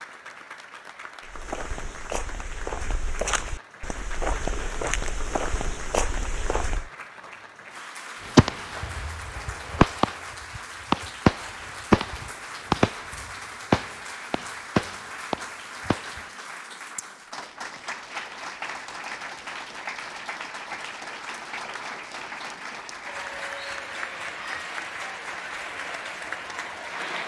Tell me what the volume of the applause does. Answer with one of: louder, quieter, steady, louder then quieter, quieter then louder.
louder.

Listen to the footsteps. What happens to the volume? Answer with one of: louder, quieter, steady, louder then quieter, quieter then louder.
louder.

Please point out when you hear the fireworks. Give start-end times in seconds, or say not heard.
8.3-16.2.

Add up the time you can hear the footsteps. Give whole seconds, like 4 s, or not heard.
6 s.